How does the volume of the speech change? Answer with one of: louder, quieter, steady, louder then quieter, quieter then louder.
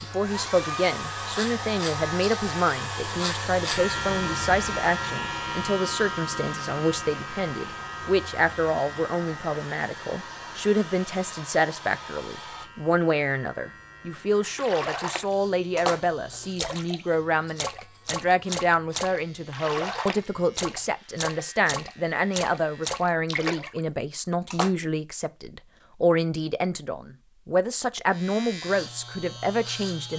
steady.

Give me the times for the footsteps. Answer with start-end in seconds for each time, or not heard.
not heard.